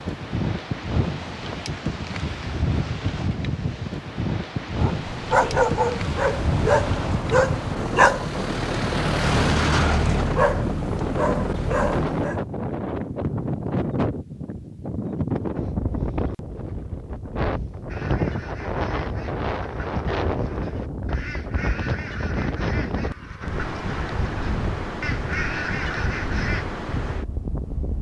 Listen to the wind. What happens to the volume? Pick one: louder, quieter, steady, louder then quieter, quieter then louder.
steady.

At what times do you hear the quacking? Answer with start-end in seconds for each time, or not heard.
17.9-26.6.